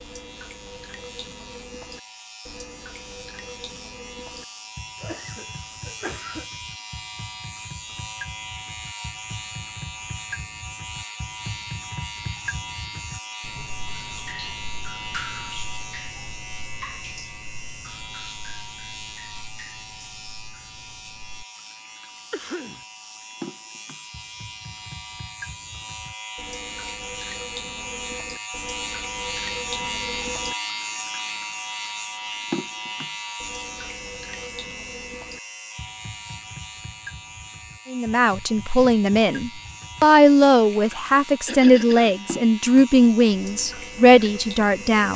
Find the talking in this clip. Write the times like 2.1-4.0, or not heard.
37.9-45.1.